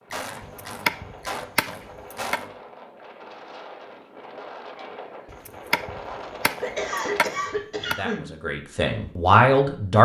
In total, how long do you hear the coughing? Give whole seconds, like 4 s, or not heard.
4 s.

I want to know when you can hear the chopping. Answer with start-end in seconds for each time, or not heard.
0.4-2.4, 5.3-8.0.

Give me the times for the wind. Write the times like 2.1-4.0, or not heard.
0.0-7.4.